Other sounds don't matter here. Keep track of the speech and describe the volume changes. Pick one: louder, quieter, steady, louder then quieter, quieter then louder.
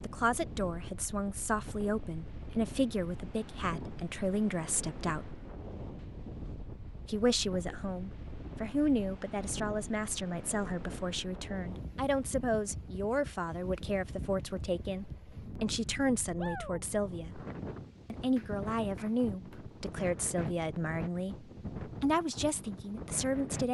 steady.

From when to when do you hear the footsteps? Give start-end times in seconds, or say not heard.
not heard.